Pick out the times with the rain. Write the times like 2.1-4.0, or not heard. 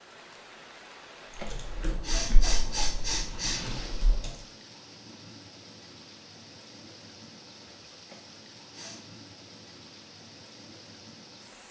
0.0-11.6.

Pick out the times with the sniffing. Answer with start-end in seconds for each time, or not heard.
1.4-3.6, 8.1-9.0.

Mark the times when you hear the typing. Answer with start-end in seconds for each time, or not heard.
1.4-4.3.